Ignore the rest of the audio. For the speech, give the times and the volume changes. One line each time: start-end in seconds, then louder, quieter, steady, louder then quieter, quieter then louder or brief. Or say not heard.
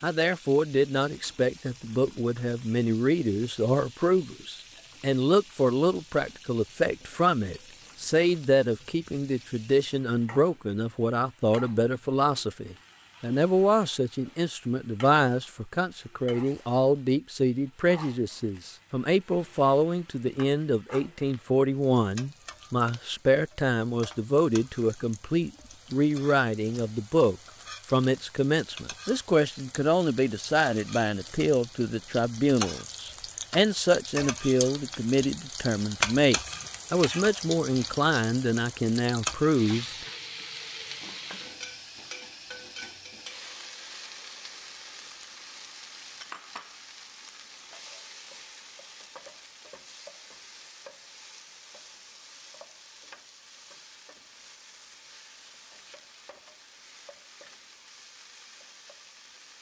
0.0-40.0 steady.